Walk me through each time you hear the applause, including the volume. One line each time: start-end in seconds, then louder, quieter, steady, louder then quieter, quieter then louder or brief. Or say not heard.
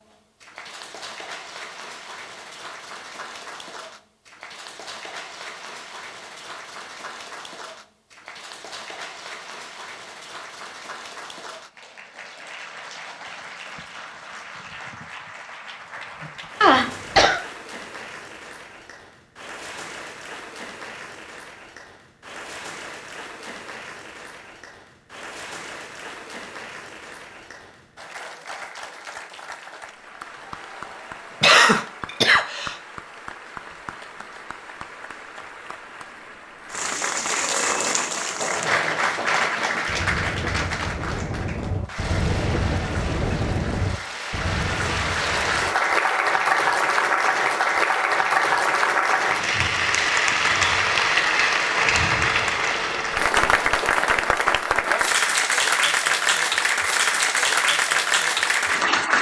0.0-59.1 louder.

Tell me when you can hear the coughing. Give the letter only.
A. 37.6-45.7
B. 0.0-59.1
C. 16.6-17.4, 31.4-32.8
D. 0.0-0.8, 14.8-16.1
C.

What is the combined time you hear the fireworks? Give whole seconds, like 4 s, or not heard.
8 s.